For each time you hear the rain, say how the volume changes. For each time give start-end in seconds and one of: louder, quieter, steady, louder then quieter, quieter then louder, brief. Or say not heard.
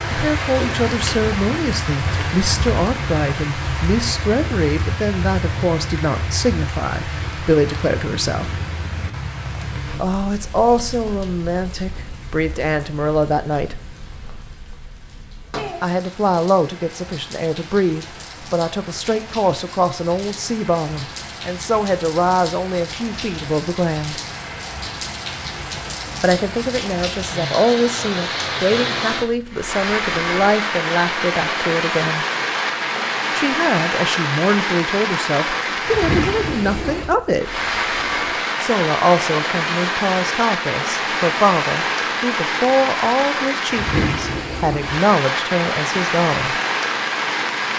0.0-47.7 quieter then louder.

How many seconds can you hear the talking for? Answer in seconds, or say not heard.
39 s.